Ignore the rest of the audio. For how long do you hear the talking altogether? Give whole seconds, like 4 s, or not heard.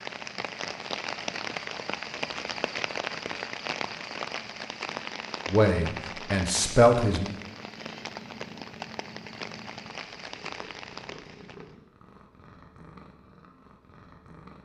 2 s.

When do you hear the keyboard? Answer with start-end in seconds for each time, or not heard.
not heard.